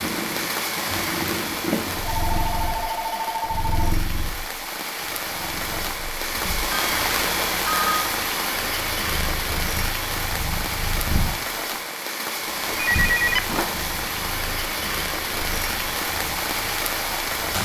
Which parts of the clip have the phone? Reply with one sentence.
The phone can be heard from 2.0 to 4.0 s, from 6.7 to 8.2 s and from 12.7 to 13.7 s.